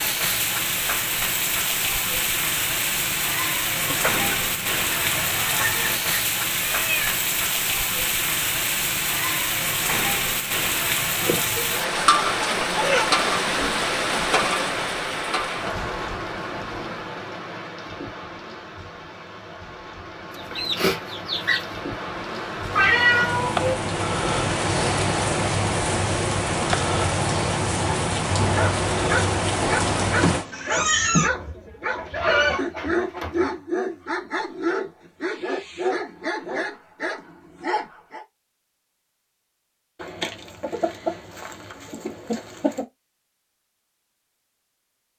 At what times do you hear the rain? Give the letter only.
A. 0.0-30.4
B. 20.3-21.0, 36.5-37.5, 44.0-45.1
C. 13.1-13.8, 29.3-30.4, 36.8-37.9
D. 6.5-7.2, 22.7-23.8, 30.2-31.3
A.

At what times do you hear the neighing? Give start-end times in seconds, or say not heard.
not heard.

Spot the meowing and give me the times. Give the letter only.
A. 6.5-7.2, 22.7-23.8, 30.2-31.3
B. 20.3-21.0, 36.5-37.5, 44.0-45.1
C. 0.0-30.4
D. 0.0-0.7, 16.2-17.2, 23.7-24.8
A.